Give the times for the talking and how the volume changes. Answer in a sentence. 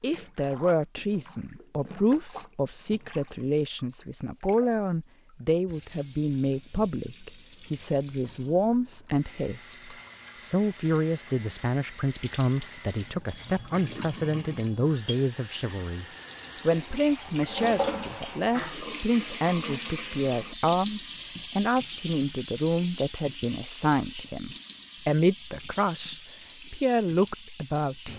You can hear the talking from 0.0 to 16.1 s, at a steady volume; and from 16.6 to 28.1 s, at a steady volume.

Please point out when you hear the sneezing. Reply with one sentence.
The sneezing can't be heard in this clip.